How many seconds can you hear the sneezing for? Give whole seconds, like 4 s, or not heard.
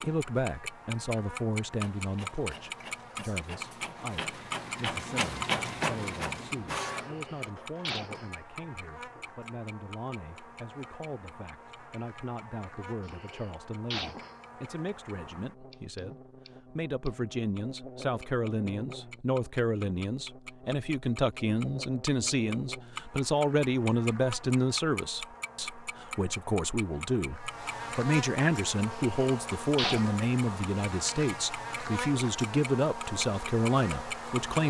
4 s.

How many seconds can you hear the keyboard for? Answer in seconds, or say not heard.
not heard.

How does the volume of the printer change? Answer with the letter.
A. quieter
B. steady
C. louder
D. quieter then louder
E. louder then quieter
E.